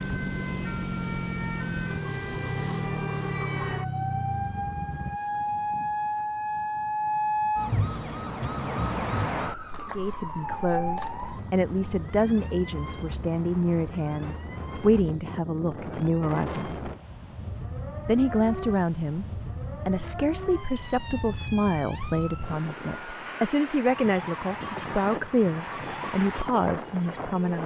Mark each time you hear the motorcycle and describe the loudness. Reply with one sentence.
The motorcycle can be heard from 0.0 to 5.2 s, at a steady volume.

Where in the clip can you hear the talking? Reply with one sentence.
The talking can be heard from 9.8 to 16.9 s and from 18.1 to 27.6 s.